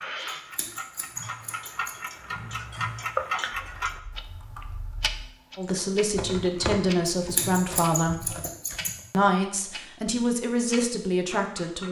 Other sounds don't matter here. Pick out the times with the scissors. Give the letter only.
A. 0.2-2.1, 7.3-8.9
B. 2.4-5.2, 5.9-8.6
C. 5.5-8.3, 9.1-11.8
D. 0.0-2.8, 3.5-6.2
A.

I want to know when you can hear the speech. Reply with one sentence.
You can hear the speech from 5.5 to 8.3 s and from 9.1 to 11.8 s.